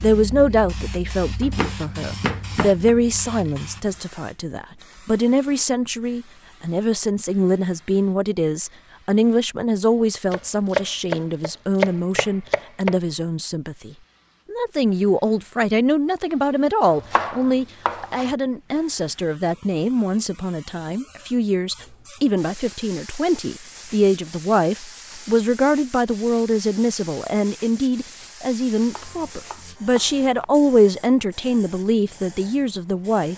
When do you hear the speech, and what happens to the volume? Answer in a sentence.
You can hear the speech from 0.0 to 33.3 s, at a steady volume.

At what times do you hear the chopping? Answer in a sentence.
The chopping can be heard from 1.4 to 3.0 s, from 10.3 to 12.9 s, from 16.9 to 18.4 s and from 28.9 to 30.4 s.